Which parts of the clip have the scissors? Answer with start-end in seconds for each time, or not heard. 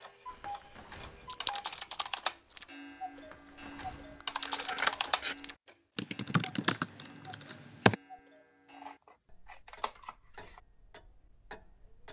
1.2-2.0, 4.5-5.3, 8.7-10.6.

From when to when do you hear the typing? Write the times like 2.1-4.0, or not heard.
0.2-8.0.